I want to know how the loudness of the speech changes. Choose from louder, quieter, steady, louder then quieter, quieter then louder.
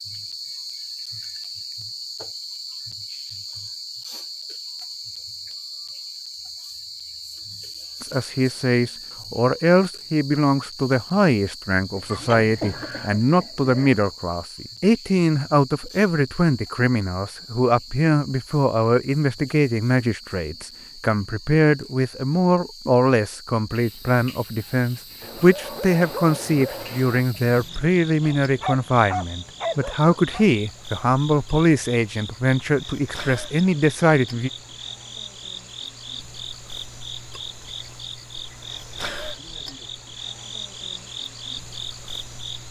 steady.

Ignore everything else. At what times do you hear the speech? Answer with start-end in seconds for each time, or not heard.
8.0-34.5.